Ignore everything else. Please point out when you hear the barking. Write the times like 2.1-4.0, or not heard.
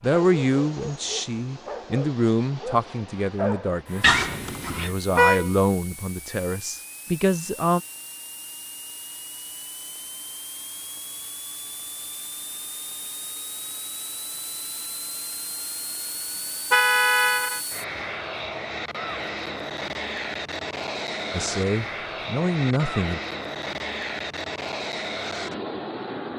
0.0-5.0.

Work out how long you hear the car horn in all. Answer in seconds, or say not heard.
2 s.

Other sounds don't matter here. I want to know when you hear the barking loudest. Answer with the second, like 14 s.
4 s.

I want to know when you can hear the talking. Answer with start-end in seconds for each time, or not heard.
0.0-7.8, 21.3-23.2.